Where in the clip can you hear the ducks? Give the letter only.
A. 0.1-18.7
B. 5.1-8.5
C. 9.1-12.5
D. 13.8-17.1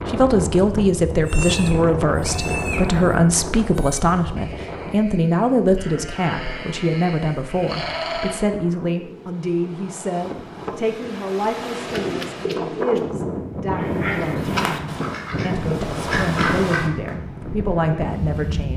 D.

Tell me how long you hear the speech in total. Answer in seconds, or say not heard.
19 s.